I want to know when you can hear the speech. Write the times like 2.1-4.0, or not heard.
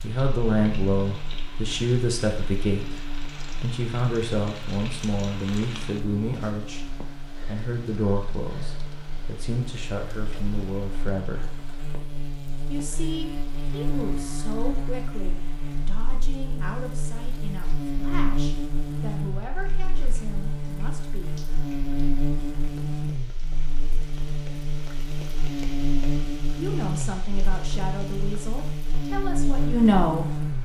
0.0-11.5, 12.7-21.3, 26.4-30.3.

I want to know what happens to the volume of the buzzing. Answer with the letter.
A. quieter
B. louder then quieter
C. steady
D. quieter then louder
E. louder
E.